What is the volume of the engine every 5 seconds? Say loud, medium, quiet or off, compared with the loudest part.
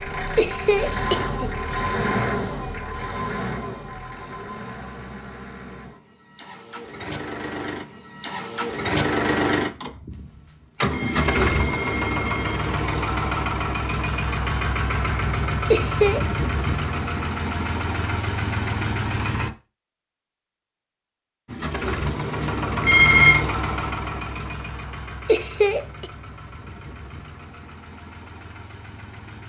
loud, loud, loud, loud, loud, quiet.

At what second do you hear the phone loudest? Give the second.
23 s.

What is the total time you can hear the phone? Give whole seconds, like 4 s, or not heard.
4 s.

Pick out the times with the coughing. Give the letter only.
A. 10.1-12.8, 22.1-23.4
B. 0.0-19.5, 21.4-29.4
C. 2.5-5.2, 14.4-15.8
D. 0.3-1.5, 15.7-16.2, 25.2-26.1
D.